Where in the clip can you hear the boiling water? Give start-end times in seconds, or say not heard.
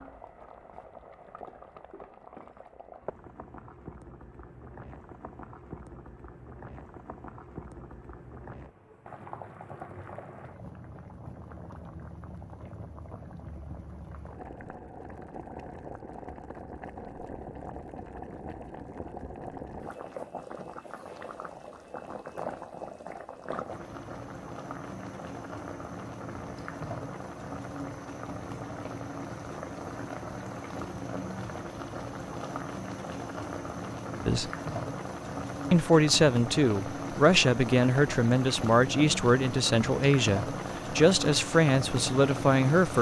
0.0-42.9.